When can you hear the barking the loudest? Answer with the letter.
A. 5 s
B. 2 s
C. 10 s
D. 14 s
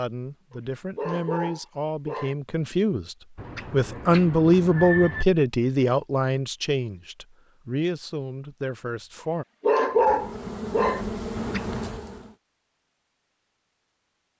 C.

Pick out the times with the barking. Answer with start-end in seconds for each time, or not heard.
0.9-2.4, 9.6-11.1.